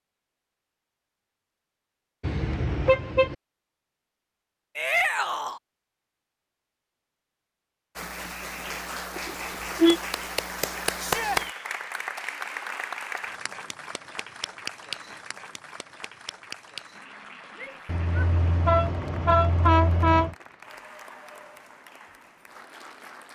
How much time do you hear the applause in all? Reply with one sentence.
The applause can be heard for 15 seconds in total.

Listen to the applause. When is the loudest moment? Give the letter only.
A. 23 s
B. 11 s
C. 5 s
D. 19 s
B.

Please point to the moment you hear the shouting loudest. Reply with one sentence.
The loudest moment of the shouting is at 5 seconds.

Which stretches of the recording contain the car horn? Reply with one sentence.
You can hear the car horn from 2.2 to 3.4 s, from 9.2 to 10.0 s and from 17.9 to 20.4 s.